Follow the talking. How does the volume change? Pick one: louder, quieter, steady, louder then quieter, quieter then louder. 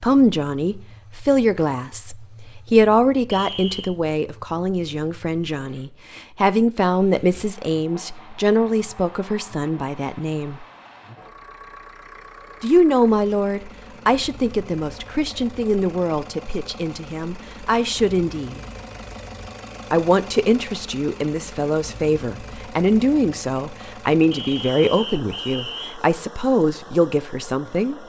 steady.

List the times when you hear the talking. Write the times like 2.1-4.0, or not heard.
0.0-10.7, 12.6-18.6, 19.9-27.9.